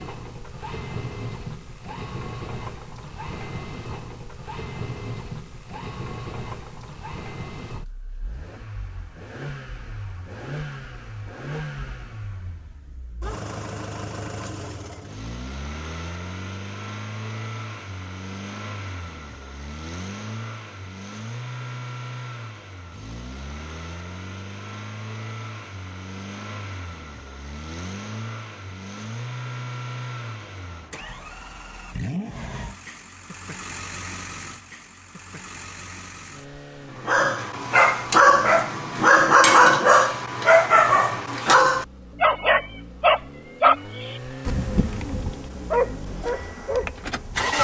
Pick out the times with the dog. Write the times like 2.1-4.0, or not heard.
37.0-47.5.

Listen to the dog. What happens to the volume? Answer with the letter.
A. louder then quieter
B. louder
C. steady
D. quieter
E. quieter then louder
D.